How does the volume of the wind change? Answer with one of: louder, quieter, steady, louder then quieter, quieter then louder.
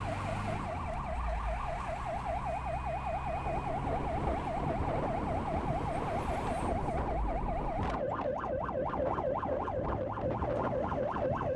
steady.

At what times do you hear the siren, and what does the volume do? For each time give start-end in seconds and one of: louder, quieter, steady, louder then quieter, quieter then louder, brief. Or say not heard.
0.0-11.5 steady.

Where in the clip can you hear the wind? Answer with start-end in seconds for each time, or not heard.
3.2-11.5.